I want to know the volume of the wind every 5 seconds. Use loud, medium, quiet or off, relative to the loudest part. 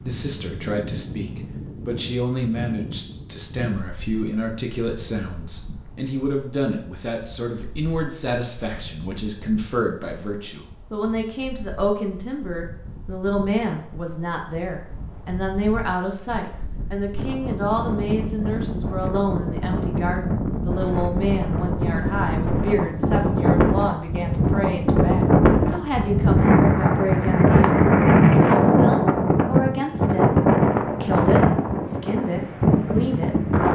quiet, quiet, quiet, quiet, medium, loud, loud.